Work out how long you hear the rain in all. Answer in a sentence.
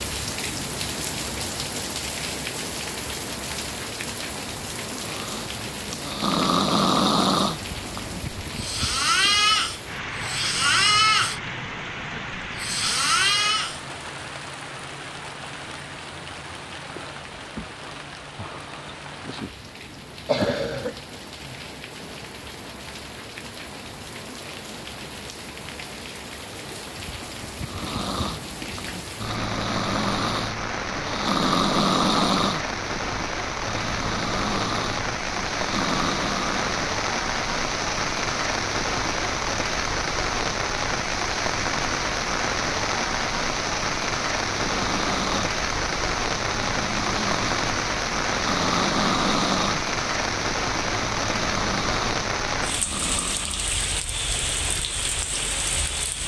You can hear the rain for 56 seconds altogether.